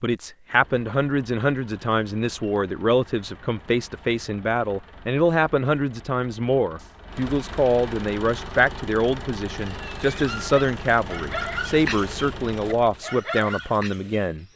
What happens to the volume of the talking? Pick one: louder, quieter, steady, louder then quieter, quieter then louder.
steady.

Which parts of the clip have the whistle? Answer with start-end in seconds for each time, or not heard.
not heard.